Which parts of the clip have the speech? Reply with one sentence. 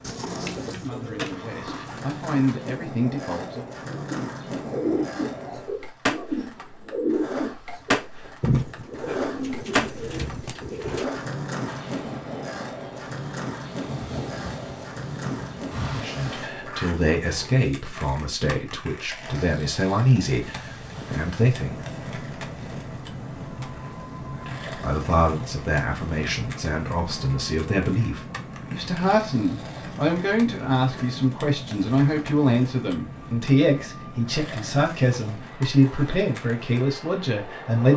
The speech can be heard from 0.0 to 3.6 s, from 15.8 to 21.8 s and from 24.2 to 37.9 s.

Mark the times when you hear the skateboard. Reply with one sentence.
You can hear the skateboard from 0.0 to 37.9 s.